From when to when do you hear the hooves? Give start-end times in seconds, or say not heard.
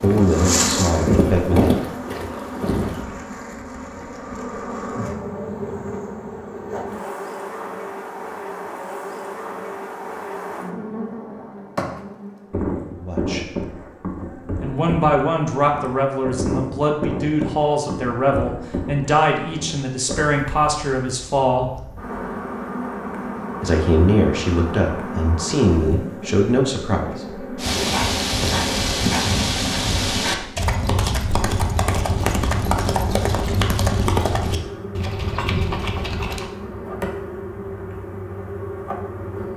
0.0-3.0, 27.6-36.5.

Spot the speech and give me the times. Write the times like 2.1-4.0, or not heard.
0.0-1.8, 13.0-13.6, 14.6-21.9, 23.6-27.1.